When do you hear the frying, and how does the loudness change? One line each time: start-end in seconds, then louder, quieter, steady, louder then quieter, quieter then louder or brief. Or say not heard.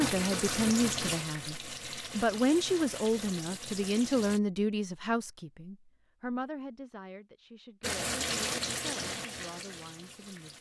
0.0-4.4 quieter
7.8-10.5 brief.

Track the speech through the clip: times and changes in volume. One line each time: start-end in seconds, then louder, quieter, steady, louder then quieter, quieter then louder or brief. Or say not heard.
0.0-10.5 quieter.